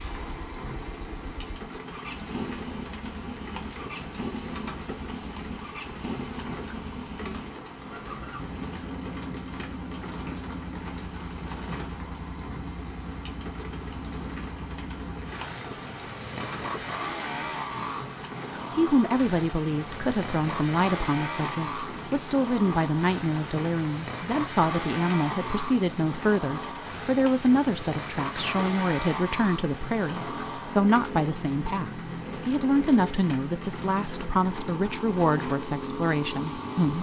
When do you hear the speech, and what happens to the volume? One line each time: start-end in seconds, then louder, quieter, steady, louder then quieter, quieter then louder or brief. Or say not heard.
18.8-36.9 steady.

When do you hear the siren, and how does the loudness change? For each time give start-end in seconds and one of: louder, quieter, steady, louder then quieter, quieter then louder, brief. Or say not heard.
not heard.